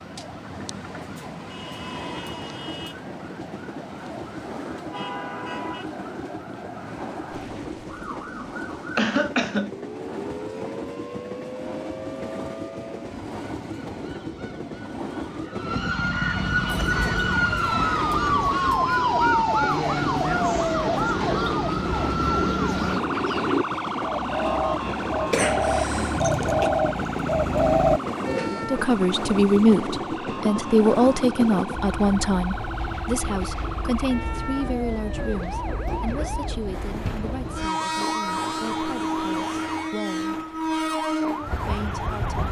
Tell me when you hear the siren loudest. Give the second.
19 s.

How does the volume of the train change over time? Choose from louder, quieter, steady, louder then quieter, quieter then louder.
louder.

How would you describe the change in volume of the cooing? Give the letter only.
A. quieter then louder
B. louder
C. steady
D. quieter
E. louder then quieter
B.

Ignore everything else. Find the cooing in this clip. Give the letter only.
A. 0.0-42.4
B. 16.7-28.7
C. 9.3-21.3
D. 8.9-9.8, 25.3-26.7
B.